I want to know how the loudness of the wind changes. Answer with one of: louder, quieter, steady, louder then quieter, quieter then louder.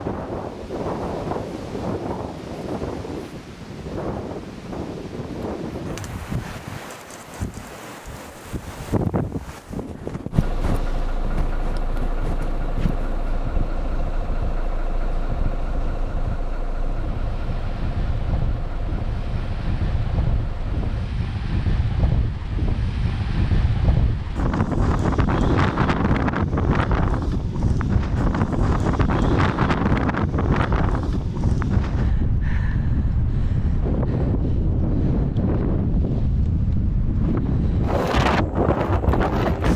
louder.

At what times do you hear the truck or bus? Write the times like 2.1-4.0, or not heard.
10.3-21.1.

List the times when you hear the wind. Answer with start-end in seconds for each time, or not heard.
0.0-39.7.